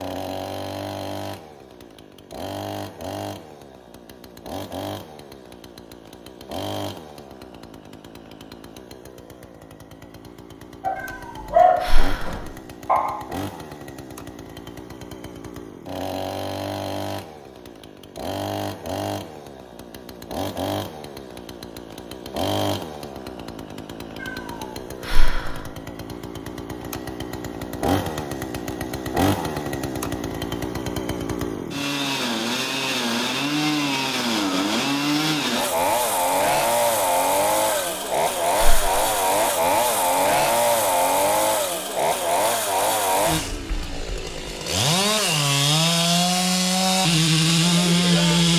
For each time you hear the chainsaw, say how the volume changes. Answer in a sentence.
You can hear the chainsaw from 0.0 to 48.5 s, getting louder.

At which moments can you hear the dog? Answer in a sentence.
You can hear the dog from 10.8 to 13.1 s.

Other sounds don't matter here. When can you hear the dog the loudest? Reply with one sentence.
The volume of the dog peaks at 12 seconds.